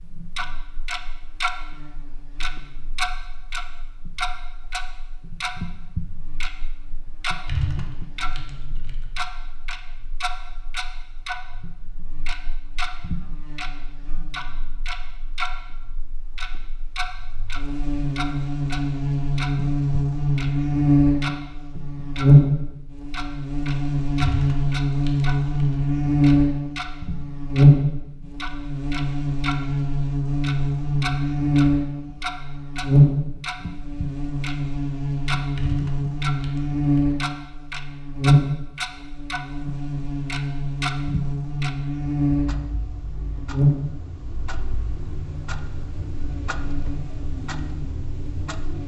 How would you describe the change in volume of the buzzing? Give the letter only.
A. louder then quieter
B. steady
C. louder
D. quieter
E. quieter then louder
A.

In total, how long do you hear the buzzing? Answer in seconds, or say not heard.
49 s.